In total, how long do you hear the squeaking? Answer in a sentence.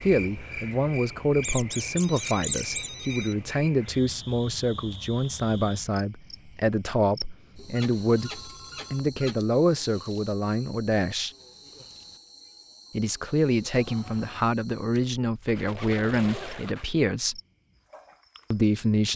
The squeaking can be heard for 5 seconds in total.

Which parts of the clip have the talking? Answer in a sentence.
You can hear the talking from 0.0 to 11.3 s, from 12.9 to 17.4 s and from 18.5 to 19.1 s.